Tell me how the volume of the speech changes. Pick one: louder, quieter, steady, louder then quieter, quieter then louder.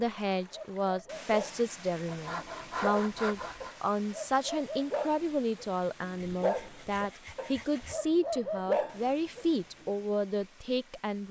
steady.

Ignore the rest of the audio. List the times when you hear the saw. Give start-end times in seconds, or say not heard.
2.0-3.8, 6.3-8.1.